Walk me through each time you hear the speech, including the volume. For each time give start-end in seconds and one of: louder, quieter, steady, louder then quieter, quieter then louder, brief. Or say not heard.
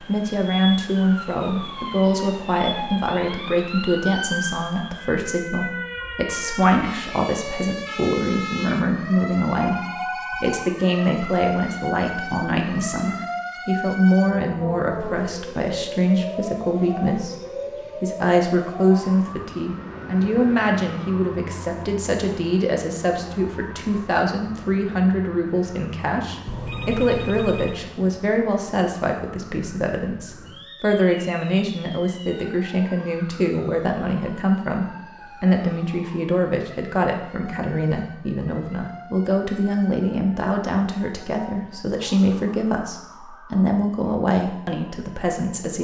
0.0-45.7 steady.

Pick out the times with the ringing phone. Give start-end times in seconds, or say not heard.
9.6-10.8, 26.4-27.8.